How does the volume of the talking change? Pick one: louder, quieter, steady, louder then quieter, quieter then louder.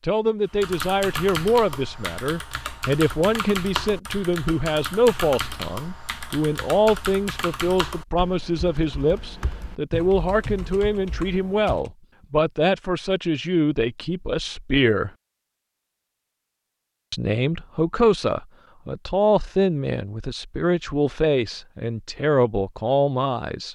steady.